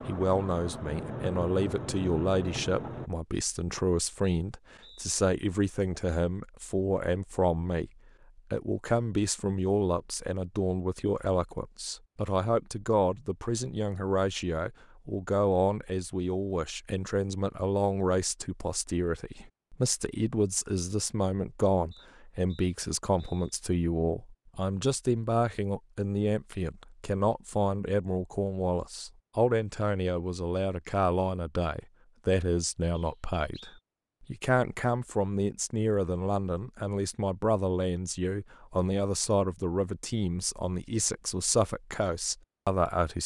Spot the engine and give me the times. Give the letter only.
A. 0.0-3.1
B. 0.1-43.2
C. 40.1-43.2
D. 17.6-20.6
A.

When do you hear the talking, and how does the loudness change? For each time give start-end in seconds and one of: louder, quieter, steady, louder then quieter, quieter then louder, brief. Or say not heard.
0.1-43.2 steady.